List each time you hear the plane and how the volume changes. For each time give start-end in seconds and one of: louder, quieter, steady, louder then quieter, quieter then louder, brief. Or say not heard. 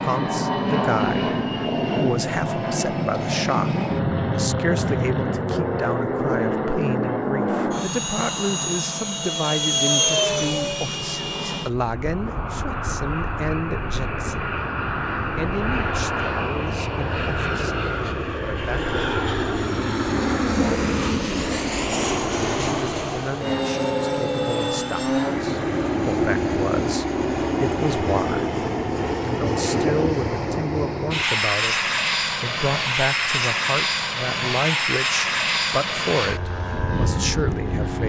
0.0-38.0 steady.